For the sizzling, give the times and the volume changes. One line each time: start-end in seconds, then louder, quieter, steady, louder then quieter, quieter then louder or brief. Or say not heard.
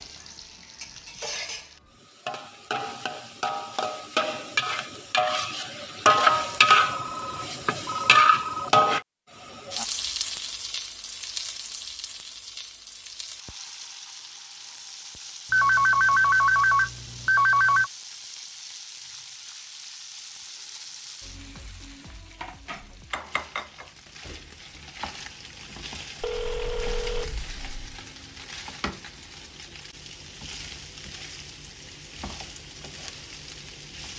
0.0-34.1 quieter.